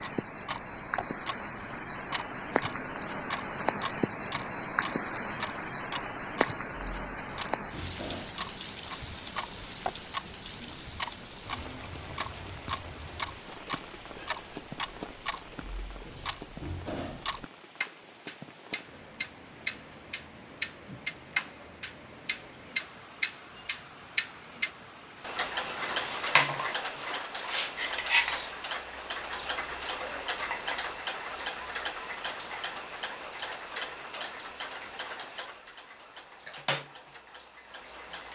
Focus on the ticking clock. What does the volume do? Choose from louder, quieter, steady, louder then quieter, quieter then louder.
louder then quieter.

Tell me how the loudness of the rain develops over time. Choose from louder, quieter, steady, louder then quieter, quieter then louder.
quieter.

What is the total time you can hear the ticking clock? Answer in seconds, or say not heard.
38 s.